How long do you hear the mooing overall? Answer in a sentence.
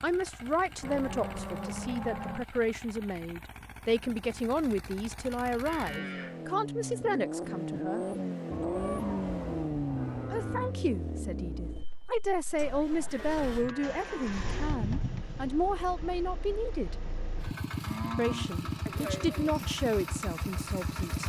The mooing can be heard for 8 seconds in total.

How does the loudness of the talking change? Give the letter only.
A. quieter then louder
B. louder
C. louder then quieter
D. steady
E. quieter
D.